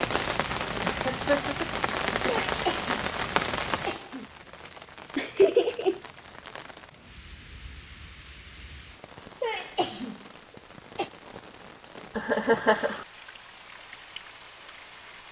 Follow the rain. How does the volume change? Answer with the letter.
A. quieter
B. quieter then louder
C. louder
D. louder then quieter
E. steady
A.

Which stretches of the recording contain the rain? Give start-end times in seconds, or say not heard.
0.0-15.2.